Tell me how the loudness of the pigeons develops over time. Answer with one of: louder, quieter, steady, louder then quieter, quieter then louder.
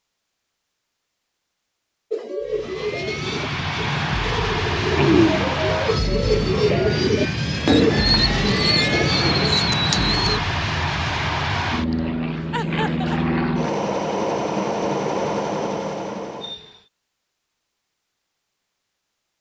louder.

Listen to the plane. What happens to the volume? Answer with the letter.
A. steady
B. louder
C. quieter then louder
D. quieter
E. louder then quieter
A.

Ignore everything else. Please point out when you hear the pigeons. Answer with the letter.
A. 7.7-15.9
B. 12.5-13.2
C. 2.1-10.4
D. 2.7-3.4
C.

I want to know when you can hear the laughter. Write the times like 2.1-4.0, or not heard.
12.5-13.2.